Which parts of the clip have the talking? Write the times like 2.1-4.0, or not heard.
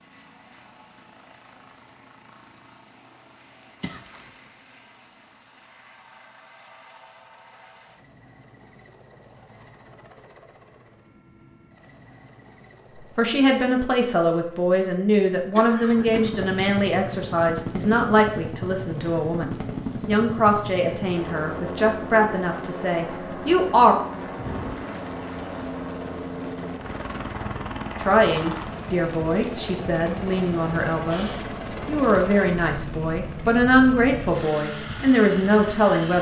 13.2-23.9, 28.0-36.1.